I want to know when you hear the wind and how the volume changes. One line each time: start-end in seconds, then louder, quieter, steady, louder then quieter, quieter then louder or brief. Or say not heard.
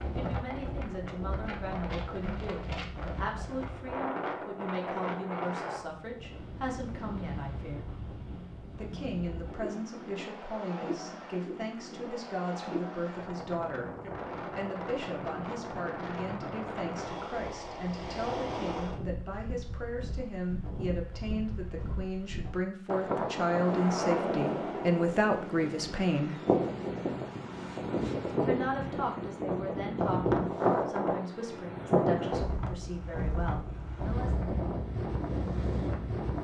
0.0-36.3 louder.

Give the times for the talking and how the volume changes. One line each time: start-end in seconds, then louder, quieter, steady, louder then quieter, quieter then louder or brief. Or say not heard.
0.0-7.8 steady
8.8-13.9 steady
14.6-26.4 louder
28.4-34.5 steady.